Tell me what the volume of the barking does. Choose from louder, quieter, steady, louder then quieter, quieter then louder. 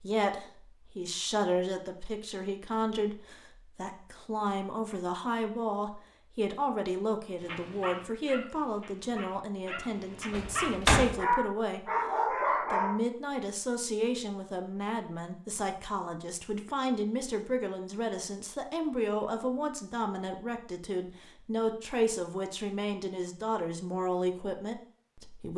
quieter then louder.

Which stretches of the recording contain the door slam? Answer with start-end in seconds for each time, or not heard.
10.3-11.2.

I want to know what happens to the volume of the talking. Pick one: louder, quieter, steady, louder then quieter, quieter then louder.
steady.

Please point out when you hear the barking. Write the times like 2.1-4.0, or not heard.
7.4-12.9.